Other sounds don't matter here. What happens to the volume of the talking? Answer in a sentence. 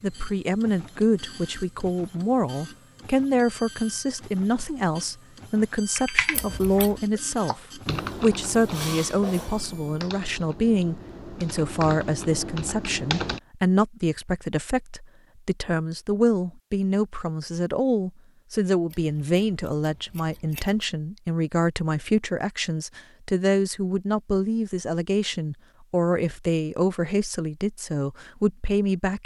The volume of the talking stays about the same.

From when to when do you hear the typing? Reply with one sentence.
The typing can be heard from 6.0 to 13.4 s.